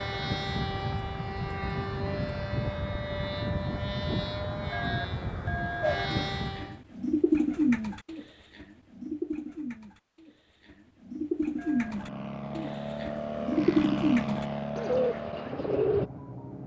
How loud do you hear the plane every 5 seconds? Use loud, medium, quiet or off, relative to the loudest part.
loud, loud, loud, medium.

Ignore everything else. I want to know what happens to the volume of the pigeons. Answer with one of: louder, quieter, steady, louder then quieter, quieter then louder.
quieter then louder.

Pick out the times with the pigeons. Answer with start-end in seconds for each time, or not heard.
5.8-16.1.